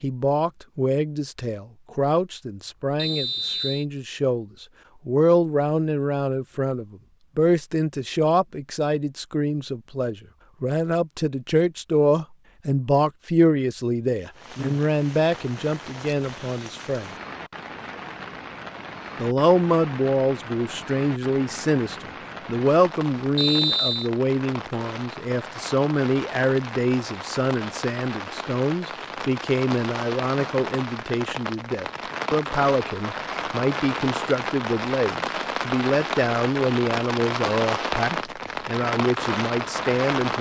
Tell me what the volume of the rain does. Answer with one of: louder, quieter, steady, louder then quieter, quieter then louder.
louder.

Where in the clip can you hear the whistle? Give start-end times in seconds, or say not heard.
3.0-3.9, 23.4-24.1.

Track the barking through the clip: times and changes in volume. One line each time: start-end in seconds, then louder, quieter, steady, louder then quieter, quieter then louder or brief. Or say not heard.
not heard.